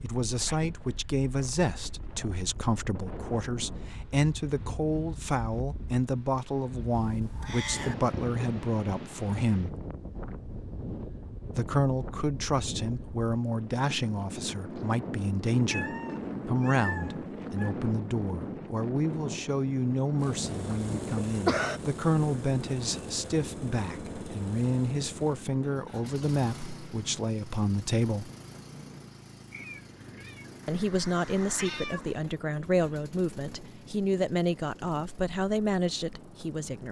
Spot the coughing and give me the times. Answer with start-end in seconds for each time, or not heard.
21.1-21.8.